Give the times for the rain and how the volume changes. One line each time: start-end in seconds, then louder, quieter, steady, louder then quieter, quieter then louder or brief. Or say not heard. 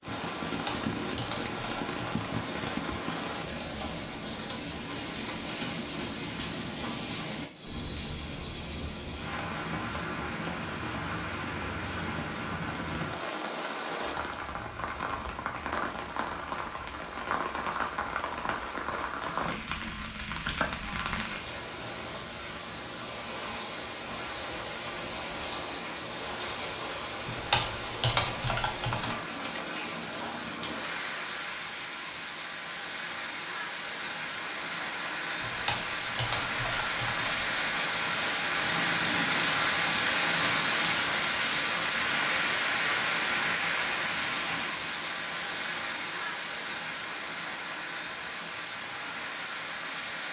0.0-50.2 louder.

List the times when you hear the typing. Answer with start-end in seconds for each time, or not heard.
0.5-2.4, 27.2-29.1, 35.4-37.5.